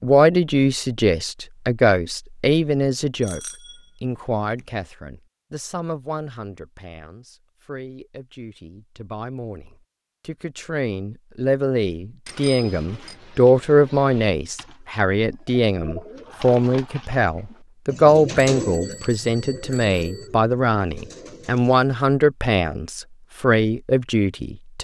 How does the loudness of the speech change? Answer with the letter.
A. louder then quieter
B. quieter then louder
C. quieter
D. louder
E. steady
B.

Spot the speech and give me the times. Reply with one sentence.
The speech can be heard from 0.0 to 3.4 s and from 4.0 to 24.7 s.